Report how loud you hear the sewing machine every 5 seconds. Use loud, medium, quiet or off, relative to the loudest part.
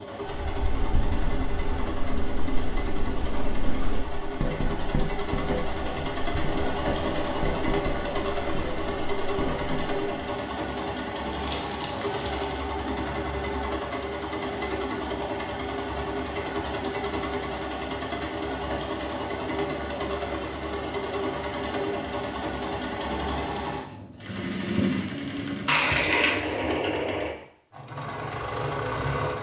medium, loud, loud, loud, loud, loud.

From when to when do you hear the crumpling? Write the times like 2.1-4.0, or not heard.
11.3-12.7, 25.6-26.8.